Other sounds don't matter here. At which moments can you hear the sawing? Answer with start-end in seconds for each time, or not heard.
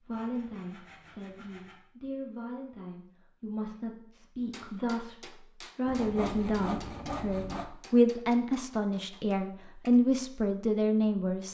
0.1-1.8, 5.8-7.7.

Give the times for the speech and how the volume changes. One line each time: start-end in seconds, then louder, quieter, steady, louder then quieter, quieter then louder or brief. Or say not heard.
0.1-11.5 louder.